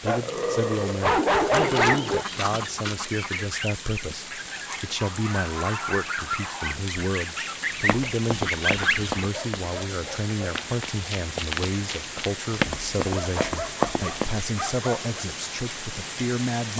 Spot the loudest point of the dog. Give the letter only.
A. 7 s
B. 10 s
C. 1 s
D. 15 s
C.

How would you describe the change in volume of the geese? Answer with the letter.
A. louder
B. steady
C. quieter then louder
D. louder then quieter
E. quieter
C.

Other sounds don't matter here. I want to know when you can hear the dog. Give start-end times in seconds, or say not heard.
0.1-2.2, 4.7-6.8, 8.7-10.3, 13.1-15.1.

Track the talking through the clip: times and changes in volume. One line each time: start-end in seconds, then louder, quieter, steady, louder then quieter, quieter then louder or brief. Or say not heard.
0.0-16.7 steady.